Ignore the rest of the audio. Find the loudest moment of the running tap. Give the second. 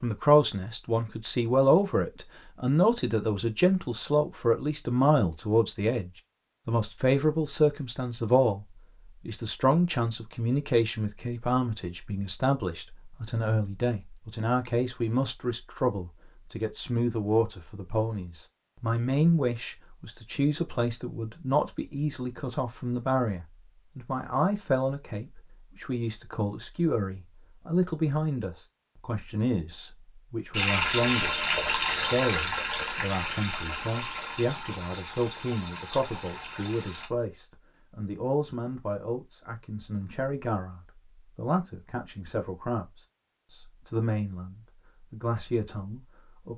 31 s.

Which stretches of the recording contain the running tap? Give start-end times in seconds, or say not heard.
30.5-37.1.